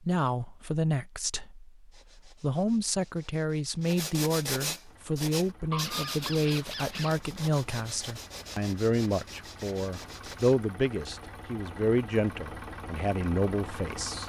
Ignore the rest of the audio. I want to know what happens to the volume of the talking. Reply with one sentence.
The loudness of the talking stays about the same.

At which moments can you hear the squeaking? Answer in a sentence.
You can hear the squeaking from 5.7 to 7.2 s.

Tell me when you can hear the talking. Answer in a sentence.
The talking can be heard from 0.0 to 14.2 s.